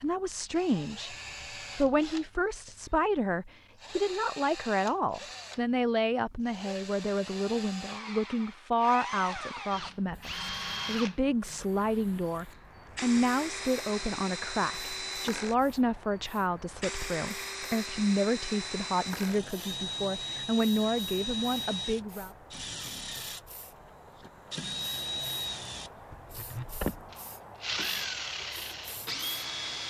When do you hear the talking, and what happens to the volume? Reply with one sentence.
You can hear the talking from 0.0 to 22.3 s, at a steady volume.